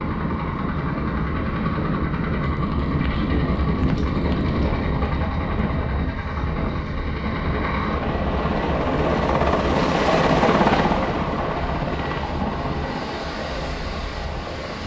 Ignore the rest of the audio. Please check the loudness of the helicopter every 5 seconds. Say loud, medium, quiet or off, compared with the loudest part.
medium, loud, loud.